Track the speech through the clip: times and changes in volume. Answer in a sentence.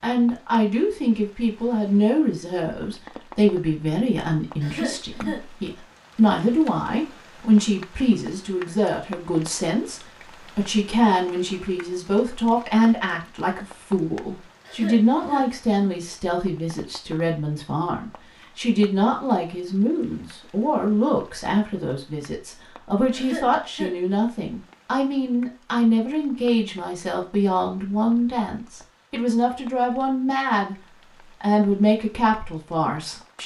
You can hear the speech from 0.0 to 30.8 s, at a steady volume; and briefly from 31.4 to 33.4 s.